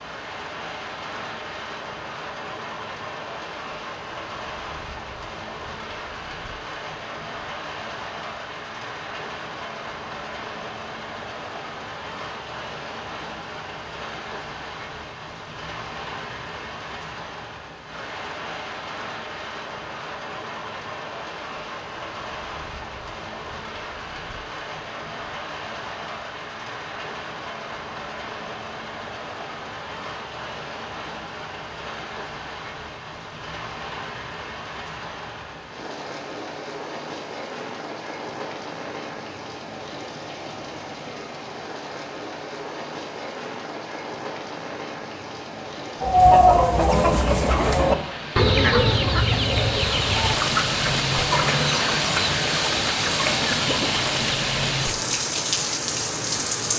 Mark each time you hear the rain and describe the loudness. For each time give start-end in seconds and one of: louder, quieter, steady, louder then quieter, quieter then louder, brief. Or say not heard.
0.0-56.7 louder.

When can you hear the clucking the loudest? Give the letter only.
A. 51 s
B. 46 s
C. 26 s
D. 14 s
B.